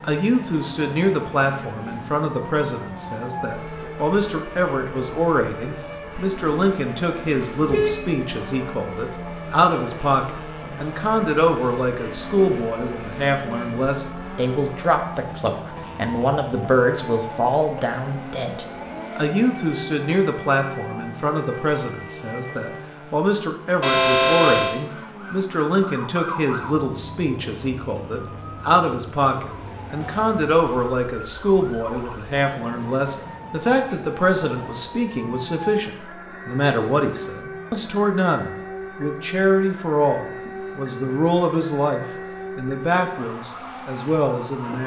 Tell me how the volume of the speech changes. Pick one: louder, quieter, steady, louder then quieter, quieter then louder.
steady.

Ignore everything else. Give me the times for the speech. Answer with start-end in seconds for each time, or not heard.
0.0-44.8.